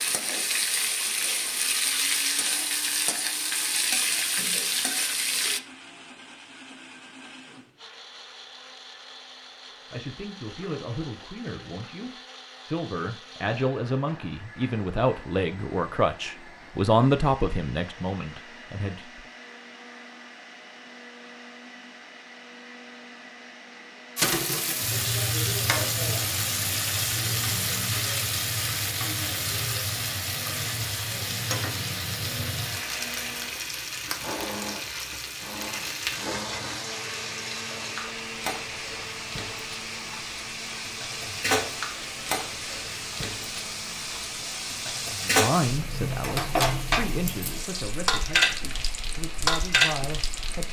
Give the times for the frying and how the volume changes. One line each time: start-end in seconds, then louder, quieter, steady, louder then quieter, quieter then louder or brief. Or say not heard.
0.0-5.6 steady
24.1-50.6 quieter then louder.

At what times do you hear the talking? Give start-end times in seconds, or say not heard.
9.9-19.2, 45.2-50.6.